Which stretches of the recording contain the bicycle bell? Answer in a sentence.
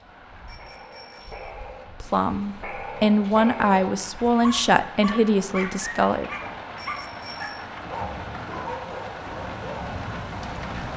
The bicycle bell can be heard from 0.5 to 1.5 s and from 6.8 to 7.7 s.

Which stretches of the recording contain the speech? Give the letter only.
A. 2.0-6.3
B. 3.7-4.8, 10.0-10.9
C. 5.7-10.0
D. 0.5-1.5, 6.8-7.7
A.